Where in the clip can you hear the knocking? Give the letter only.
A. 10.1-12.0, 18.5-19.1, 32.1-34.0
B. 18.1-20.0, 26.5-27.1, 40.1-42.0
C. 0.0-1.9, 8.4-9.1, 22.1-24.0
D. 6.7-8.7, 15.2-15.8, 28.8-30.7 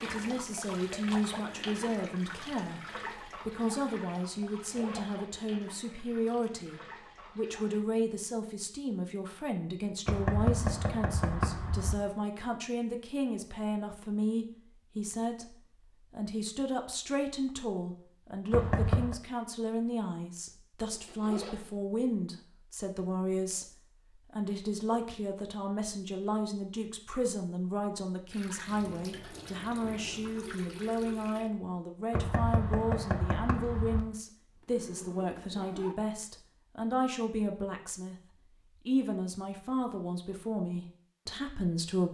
A.